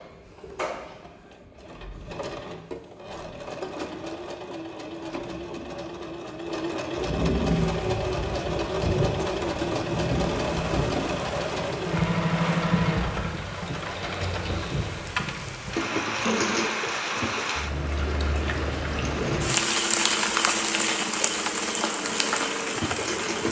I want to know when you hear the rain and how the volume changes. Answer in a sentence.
The rain can be heard from 7.5 to 23.4 s, getting louder.